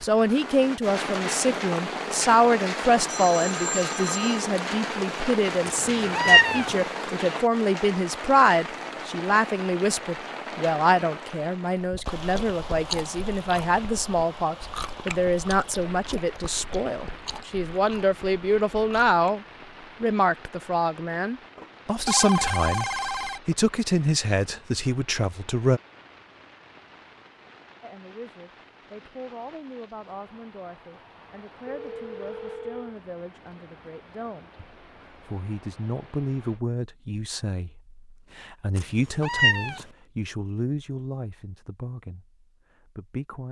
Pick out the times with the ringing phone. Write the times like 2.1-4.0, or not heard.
3.0-4.5, 21.6-23.6, 31.6-33.0.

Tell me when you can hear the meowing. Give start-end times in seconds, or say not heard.
5.7-6.8, 38.8-39.9.